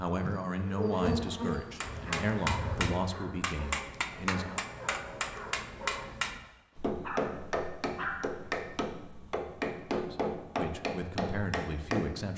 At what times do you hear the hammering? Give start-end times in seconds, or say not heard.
1.4-12.2.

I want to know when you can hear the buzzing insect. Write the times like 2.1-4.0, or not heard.
0.0-3.0.